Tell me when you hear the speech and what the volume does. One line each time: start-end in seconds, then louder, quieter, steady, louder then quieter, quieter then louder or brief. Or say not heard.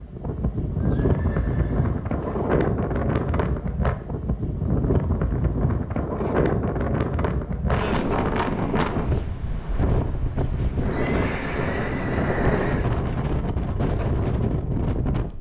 not heard.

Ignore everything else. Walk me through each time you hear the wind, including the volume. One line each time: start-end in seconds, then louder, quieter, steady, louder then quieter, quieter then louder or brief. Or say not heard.
0.0-15.3 steady.